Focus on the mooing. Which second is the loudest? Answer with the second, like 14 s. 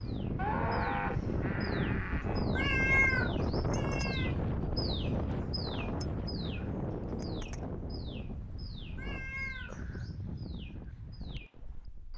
1 s.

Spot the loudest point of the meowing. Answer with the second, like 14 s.
3 s.